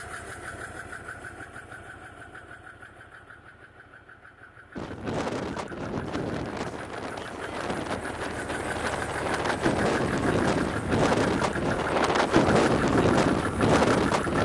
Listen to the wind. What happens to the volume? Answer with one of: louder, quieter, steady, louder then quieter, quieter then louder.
louder.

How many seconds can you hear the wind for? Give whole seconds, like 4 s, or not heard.
10 s.